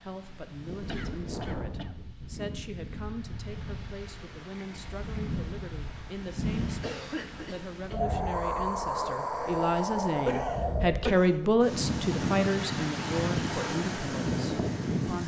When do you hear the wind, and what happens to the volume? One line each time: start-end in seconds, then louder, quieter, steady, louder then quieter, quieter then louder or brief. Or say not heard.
0.0-15.2 louder.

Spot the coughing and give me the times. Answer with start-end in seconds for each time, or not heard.
0.8-1.9, 6.8-8.0, 10.2-11.5.